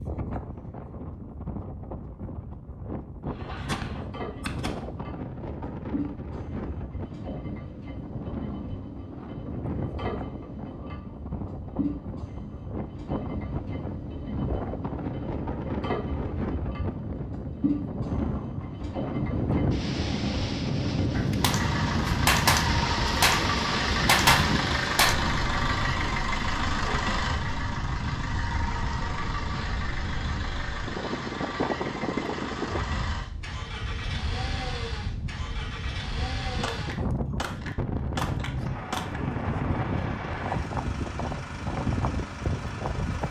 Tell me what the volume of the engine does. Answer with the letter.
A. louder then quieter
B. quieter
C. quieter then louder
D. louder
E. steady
A.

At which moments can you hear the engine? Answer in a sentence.
The engine can be heard from 3.2 to 43.2 s.